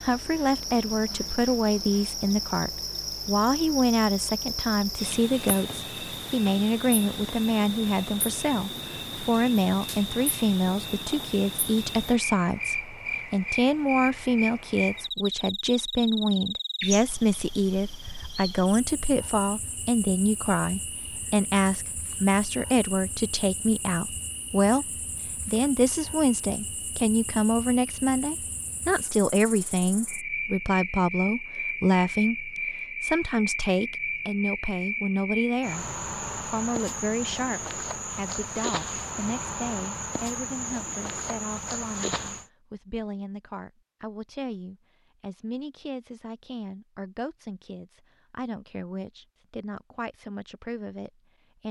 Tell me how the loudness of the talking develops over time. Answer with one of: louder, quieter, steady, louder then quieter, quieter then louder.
quieter.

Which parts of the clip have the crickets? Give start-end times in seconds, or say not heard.
0.0-42.5.